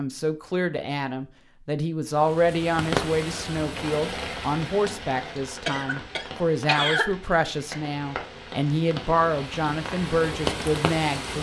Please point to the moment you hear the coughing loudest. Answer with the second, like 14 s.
7 s.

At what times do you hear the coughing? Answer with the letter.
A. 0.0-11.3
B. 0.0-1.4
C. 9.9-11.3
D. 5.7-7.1
D.